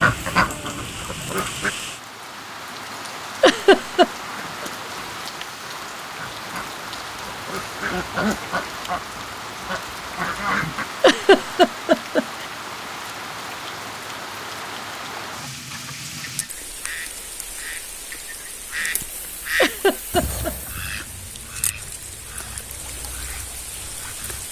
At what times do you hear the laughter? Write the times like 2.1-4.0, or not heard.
3.4-4.1, 11.0-12.4, 19.6-20.5.